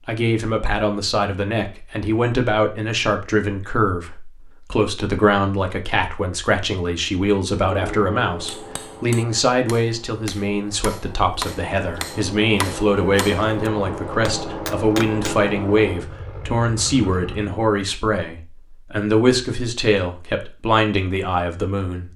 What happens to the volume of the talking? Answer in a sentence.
The loudness of the talking stays about the same.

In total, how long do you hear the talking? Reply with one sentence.
You can hear the talking for 22 seconds altogether.